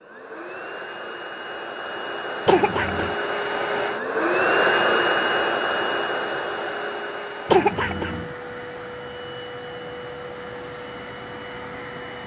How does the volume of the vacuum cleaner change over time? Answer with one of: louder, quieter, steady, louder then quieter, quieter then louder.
louder then quieter.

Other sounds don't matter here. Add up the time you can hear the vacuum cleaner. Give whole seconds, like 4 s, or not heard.
12 s.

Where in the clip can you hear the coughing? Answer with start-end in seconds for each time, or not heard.
2.5-3.1, 7.5-8.3.